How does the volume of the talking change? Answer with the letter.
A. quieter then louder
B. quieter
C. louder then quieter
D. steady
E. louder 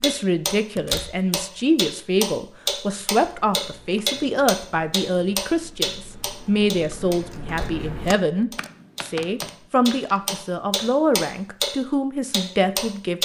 D.